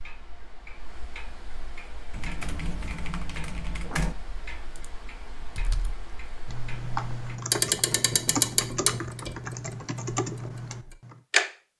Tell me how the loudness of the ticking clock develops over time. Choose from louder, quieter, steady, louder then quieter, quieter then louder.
louder then quieter.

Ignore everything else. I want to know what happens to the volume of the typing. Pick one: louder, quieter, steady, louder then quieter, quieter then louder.
quieter then louder.